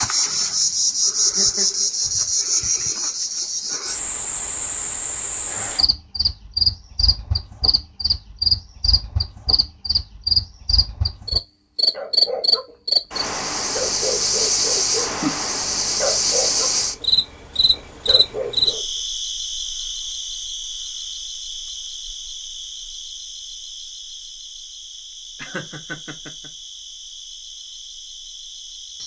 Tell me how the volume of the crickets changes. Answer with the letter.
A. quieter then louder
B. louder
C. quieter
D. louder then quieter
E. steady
C.